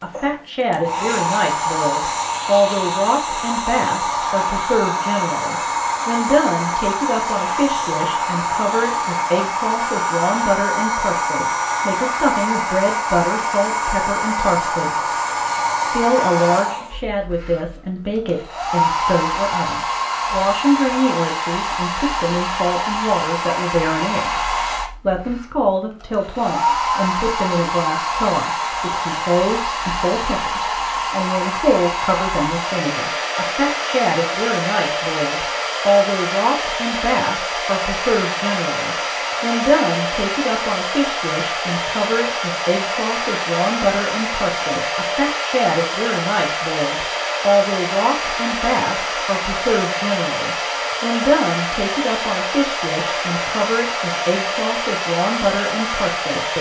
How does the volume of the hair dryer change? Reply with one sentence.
The volume of the hair dryer stays about the same.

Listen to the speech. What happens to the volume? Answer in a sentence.
The loudness of the speech stays about the same.